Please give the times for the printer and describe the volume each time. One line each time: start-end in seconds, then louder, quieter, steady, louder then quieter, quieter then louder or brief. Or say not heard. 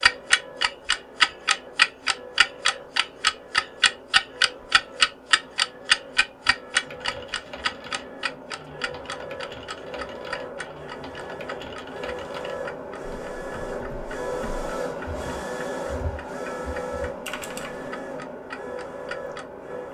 0.0-19.8 louder.